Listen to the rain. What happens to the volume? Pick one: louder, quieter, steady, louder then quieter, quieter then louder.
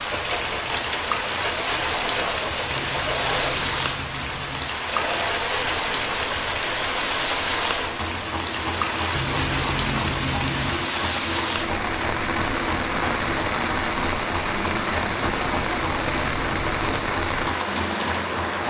steady.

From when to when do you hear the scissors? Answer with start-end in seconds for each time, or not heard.
2.7-4.7, 9.2-10.9, 15.8-16.6.